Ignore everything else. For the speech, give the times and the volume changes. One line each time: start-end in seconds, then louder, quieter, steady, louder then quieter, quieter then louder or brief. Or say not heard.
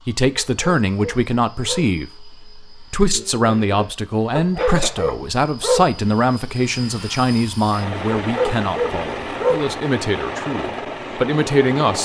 0.1-12.0 steady.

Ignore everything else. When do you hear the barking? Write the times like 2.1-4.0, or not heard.
0.3-1.9, 4.3-6.0, 8.2-9.7.